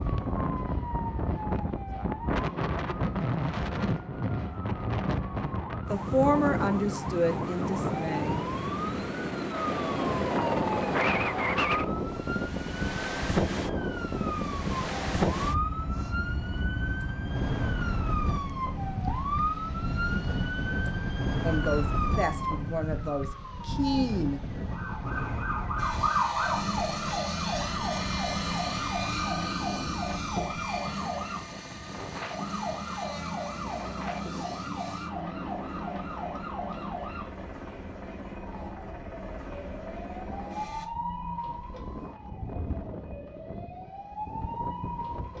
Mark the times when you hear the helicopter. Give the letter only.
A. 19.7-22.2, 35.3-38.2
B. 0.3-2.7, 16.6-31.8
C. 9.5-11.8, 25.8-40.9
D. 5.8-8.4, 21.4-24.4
C.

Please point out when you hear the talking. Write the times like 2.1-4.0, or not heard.
5.8-8.4, 21.4-24.4.